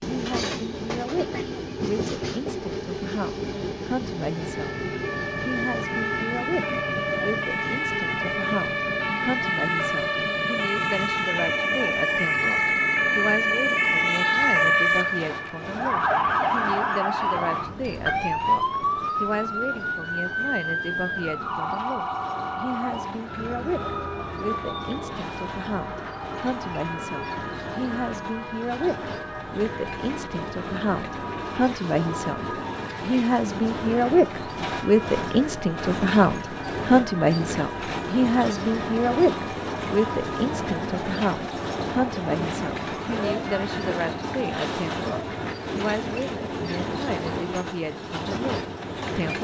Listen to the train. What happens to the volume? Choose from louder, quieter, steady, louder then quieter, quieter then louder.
quieter then louder.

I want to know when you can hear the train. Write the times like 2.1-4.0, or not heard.
0.0-49.3.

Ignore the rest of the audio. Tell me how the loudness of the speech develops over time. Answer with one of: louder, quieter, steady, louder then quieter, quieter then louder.
louder then quieter.